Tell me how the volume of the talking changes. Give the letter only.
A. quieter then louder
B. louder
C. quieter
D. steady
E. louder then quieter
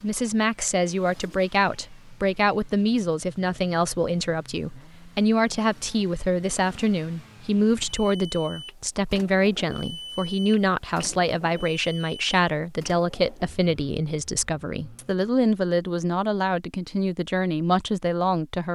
D.